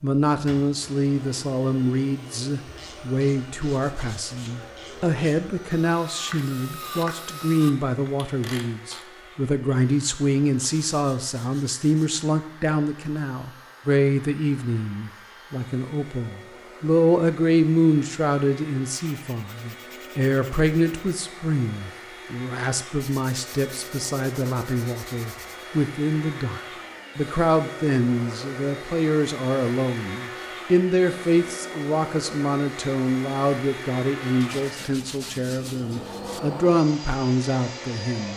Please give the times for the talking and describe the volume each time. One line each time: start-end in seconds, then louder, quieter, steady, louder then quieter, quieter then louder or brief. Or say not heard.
0.0-38.3 steady.